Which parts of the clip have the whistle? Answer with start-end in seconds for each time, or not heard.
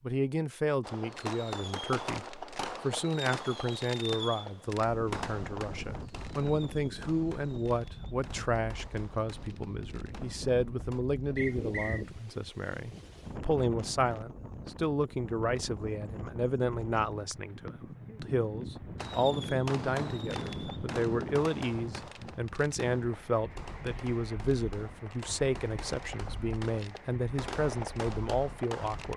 11.3-12.1.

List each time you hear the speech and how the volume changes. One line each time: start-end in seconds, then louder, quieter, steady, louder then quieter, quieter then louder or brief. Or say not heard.
0.0-29.1 steady.